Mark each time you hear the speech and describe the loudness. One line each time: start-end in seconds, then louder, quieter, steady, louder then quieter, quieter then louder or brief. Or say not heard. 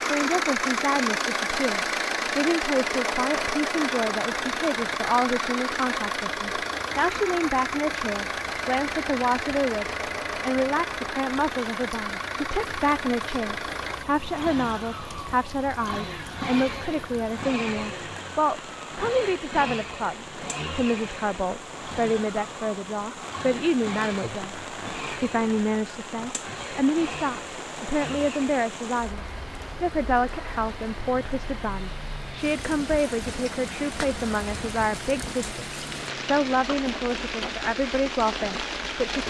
0.1-39.2 steady.